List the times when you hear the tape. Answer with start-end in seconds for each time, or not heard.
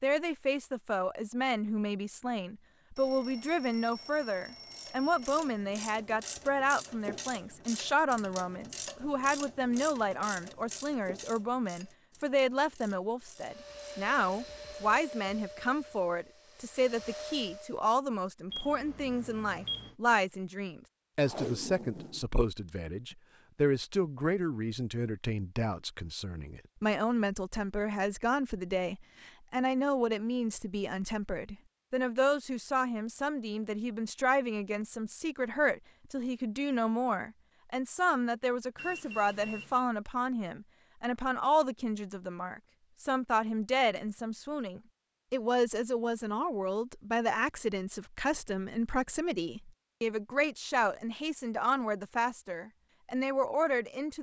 21.2-23.1.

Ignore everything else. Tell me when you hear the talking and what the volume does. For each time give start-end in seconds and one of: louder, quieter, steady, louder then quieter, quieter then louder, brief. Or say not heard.
0.0-54.1 steady.